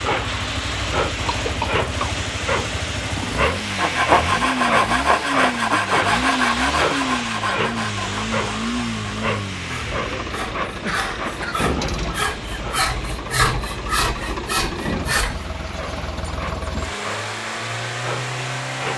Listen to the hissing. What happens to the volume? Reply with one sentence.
The loudness of the hissing goes down.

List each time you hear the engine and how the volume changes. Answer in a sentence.
The engine can be heard from 0.0 to 18.9 s, at a steady volume.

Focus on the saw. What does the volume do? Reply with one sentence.
The volume of the saw goes down, then up.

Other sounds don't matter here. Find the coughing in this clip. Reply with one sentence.
You can hear the coughing from 1.2 to 2.2 s and from 10.7 to 11.7 s.